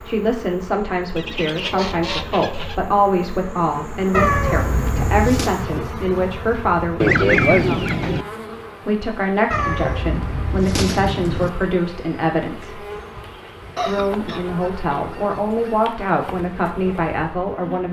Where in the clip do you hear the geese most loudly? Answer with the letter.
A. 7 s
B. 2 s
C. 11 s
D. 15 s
A.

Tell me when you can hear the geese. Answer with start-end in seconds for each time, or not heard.
1.1-2.8, 7.0-8.2, 13.8-15.9.